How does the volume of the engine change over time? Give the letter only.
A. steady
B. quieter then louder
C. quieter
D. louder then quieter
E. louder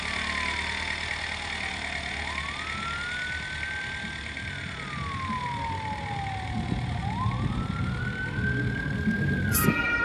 C.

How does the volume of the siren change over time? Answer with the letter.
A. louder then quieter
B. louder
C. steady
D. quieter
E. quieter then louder
B.